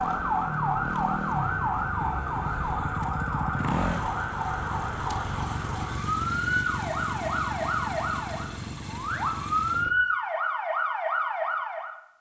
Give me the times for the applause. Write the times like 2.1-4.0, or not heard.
not heard.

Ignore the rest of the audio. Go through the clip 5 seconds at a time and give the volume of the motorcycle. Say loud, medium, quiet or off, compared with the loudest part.
loud, loud, off.